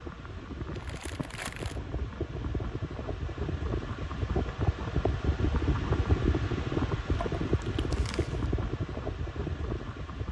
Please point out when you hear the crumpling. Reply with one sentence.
You can hear the crumpling from 0.7 to 1.8 s and from 7.1 to 8.5 s.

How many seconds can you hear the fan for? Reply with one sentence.
You can hear the fan for 10 seconds altogether.